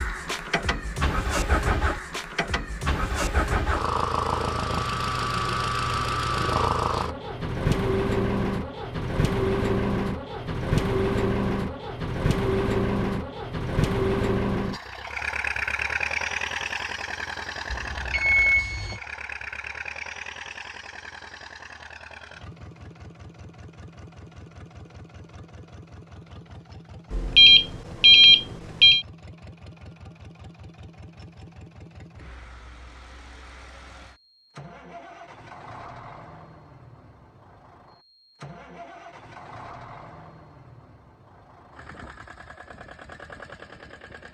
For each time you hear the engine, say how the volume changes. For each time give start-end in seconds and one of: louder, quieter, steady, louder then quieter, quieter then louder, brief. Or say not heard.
0.0-44.2 quieter.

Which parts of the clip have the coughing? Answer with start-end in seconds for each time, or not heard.
not heard.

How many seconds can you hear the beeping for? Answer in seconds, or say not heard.
3 s.